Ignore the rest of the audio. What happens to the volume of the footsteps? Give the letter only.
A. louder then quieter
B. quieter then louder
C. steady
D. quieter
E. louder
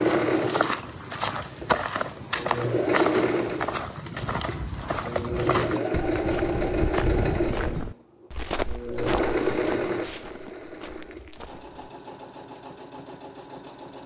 D.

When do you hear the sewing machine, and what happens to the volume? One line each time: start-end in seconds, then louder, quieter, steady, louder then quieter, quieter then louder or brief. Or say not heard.
0.0-14.0 quieter.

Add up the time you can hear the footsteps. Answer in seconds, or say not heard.
12 s.